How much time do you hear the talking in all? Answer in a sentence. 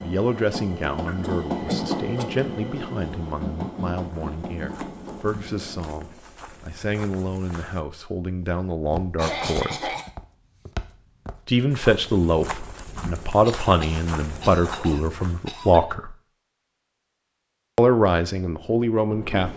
The talking can be heard for 16 seconds in total.